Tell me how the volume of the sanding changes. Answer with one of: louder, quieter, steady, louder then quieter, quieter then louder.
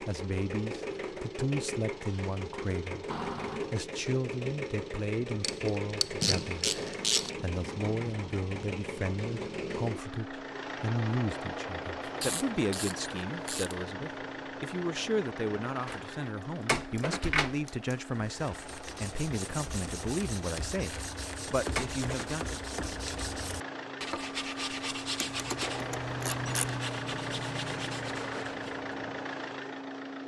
louder.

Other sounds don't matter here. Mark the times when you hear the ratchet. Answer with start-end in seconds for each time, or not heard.
5.4-7.3, 12.0-13.8, 25.1-26.8.